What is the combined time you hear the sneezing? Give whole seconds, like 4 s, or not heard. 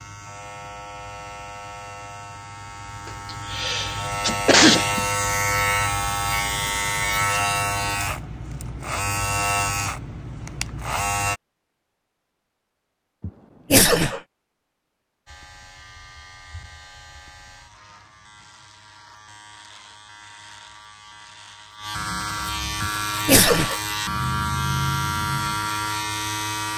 4 s.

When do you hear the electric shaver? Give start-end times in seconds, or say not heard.
0.0-11.4, 15.2-26.7.